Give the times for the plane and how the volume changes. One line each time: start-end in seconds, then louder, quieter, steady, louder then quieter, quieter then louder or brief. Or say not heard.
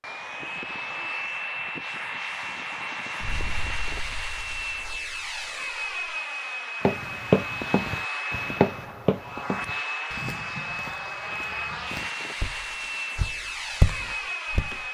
0.0-14.9 steady.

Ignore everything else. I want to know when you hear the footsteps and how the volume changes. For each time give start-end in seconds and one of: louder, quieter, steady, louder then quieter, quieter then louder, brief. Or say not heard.
6.8-14.8 quieter then louder.